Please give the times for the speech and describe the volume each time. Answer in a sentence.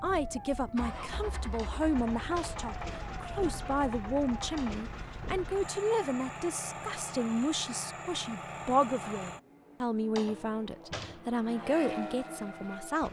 You can hear the speech from 0.0 to 13.0 s, at a steady volume.